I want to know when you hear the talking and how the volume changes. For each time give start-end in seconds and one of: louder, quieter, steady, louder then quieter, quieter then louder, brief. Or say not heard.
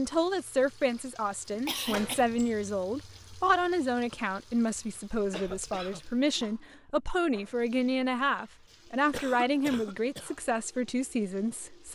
0.0-11.9 steady.